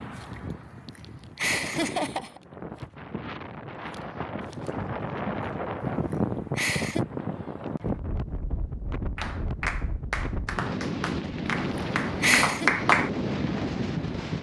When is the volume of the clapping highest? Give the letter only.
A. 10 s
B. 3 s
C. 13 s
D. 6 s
C.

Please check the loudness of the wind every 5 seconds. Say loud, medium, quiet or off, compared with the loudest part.
medium, loud, loud.